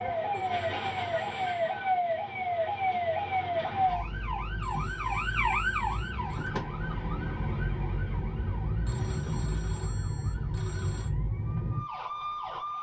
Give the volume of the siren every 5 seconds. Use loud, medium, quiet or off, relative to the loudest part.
loud, loud, medium.